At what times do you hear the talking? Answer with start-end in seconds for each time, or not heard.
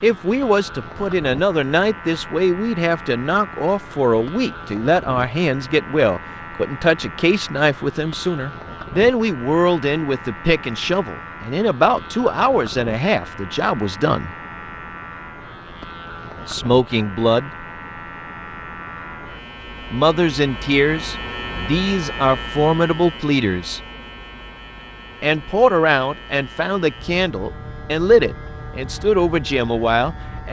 0.0-14.3, 16.4-17.5, 19.9-23.8, 25.2-30.4.